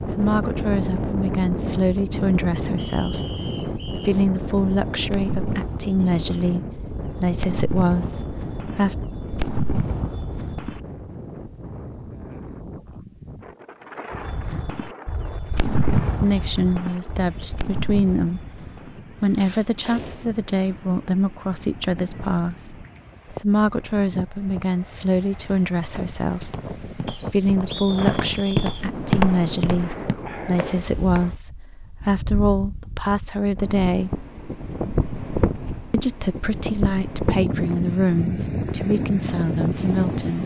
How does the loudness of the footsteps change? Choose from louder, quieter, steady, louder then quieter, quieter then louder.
louder then quieter.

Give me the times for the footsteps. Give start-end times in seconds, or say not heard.
25.9-31.4.